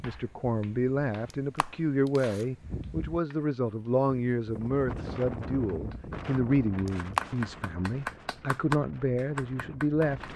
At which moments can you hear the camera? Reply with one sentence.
The camera can be heard from 1.3 to 2.5 s and from 6.8 to 7.2 s.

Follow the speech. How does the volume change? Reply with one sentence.
The loudness of the speech stays about the same.